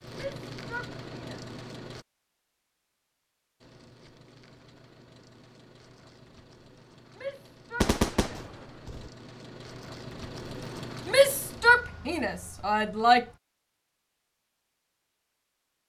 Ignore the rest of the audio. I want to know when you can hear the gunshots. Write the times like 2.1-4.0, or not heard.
7.8-9.1.